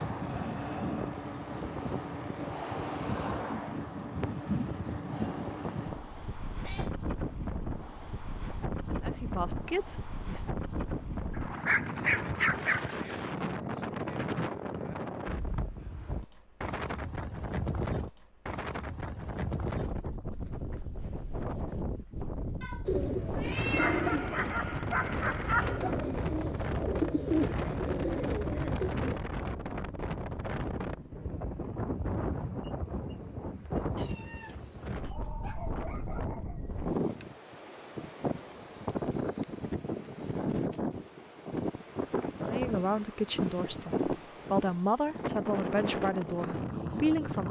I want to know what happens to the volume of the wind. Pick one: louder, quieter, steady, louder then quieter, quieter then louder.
steady.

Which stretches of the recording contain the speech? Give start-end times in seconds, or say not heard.
8.8-10.4, 42.5-47.4.